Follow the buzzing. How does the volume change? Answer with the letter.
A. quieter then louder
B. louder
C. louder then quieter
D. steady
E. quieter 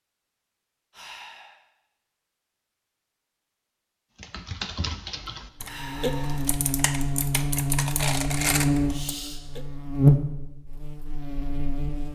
C.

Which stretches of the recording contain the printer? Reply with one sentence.
You can't hear the printer here.